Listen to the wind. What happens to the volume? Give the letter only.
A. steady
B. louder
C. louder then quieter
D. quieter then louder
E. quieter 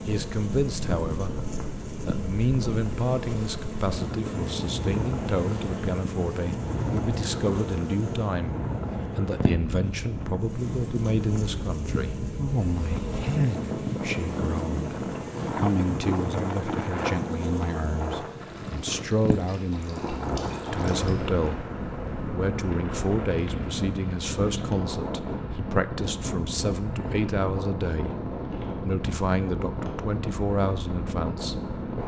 A.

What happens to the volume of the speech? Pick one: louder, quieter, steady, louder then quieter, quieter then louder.
steady.